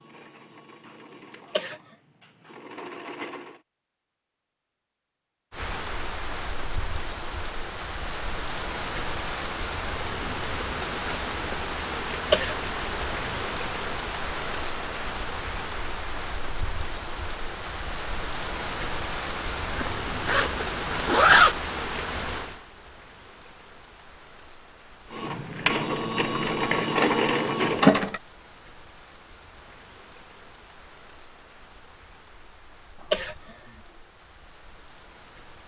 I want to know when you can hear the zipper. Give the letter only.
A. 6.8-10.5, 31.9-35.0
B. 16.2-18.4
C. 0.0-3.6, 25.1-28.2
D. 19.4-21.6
D.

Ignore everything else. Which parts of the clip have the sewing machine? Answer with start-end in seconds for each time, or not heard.
0.0-3.6, 25.1-28.2.